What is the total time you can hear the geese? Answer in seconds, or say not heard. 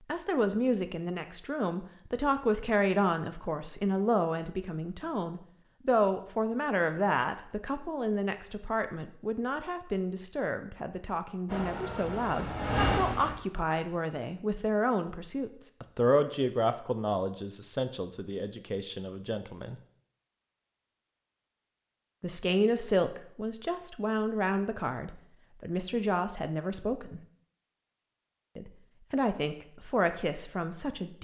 not heard.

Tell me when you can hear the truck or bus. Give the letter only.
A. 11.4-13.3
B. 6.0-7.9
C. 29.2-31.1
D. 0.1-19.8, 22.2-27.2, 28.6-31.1
A.